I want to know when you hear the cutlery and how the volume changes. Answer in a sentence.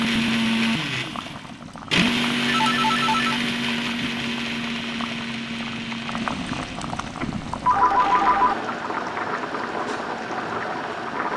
You can't hear the cutlery here.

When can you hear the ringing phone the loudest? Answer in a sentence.
The volume of the ringing phone peaks at 8 seconds.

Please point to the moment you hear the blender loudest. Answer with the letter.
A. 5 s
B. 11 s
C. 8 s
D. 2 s
D.